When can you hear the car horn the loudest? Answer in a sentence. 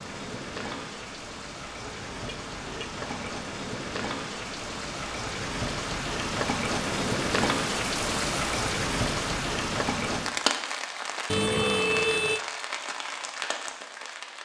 The loudest moment of the car horn is at 12 seconds.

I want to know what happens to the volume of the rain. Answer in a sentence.
The volume of the rain goes up, then down.